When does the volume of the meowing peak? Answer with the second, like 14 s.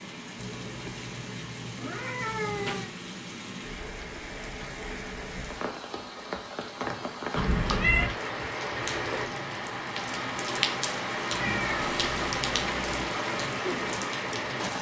8 s.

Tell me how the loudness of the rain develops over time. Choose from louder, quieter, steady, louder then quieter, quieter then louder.
louder.